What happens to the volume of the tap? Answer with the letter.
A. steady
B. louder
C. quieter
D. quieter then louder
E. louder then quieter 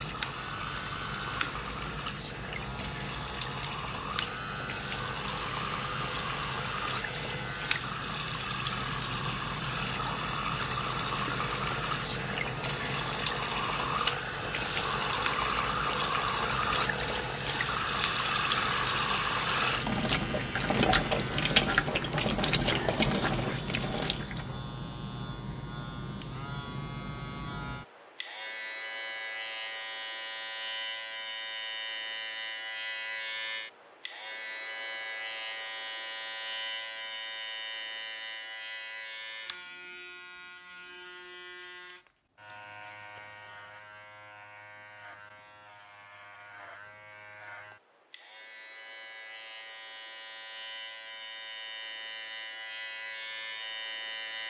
B.